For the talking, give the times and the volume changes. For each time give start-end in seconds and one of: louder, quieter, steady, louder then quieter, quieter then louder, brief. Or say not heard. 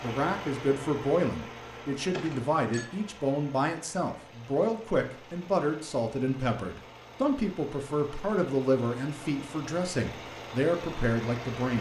0.0-11.7 steady.